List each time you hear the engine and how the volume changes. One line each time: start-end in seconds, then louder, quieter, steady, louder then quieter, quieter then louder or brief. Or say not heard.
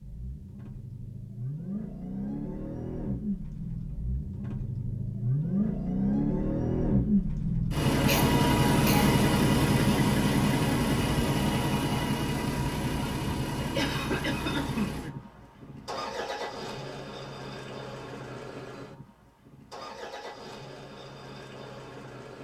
0.0-22.3 louder then quieter.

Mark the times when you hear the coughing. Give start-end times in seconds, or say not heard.
8.1-9.2, 13.6-15.0.